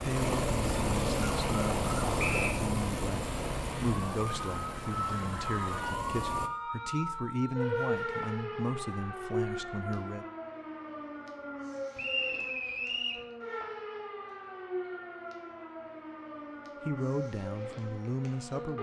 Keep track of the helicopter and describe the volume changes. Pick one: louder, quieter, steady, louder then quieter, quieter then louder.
quieter.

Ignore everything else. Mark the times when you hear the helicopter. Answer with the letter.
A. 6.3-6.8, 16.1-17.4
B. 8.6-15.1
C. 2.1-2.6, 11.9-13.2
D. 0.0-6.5
D.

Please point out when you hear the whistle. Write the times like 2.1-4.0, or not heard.
2.1-2.6, 11.9-13.2.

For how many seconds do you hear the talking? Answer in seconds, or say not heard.
12 s.